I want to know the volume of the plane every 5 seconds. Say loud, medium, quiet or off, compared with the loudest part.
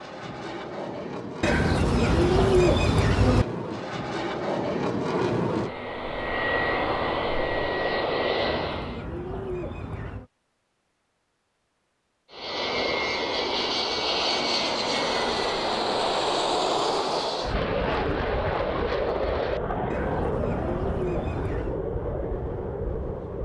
medium, loud, loud, loud, medium.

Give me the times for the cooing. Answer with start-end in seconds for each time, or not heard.
1.4-3.5, 8.3-10.3, 19.9-21.8.